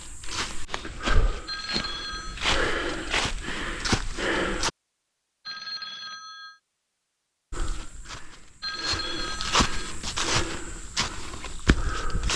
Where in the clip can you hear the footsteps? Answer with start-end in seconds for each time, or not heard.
0.0-4.7, 7.5-12.3.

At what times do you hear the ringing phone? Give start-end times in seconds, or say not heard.
1.4-2.4, 5.5-6.6, 8.6-9.9.